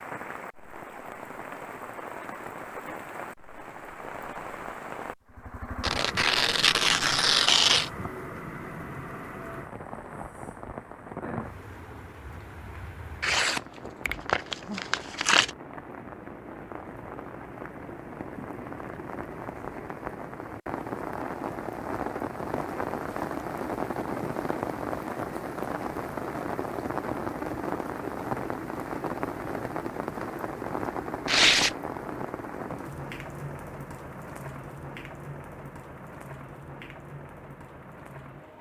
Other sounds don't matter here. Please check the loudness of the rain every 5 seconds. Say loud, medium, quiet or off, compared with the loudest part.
medium, medium, medium, medium, loud, loud, loud, medium.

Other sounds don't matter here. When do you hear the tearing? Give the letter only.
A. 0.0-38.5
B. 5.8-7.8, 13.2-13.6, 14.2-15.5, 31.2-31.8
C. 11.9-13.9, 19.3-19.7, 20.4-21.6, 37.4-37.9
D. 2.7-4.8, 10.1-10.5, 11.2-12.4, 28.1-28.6
B.